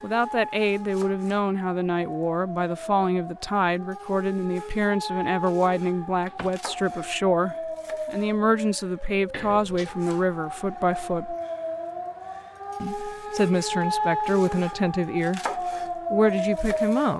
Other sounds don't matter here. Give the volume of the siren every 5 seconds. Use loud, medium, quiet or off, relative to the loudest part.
medium, medium, loud, loud.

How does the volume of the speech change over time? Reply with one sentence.
The loudness of the speech stays about the same.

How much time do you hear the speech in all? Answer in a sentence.
You can hear the speech for 16 seconds altogether.